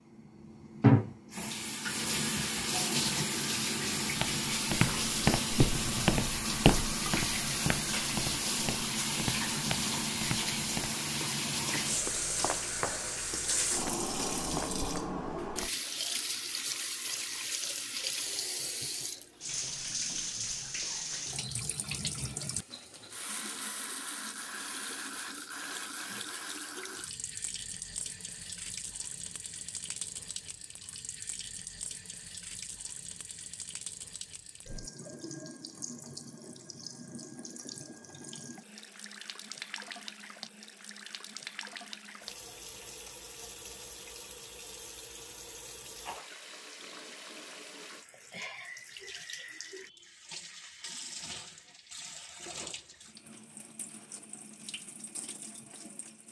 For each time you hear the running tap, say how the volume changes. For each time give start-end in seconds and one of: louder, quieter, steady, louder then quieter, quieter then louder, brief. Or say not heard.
0.1-56.2 quieter.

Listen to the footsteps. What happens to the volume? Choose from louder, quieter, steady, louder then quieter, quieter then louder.
quieter.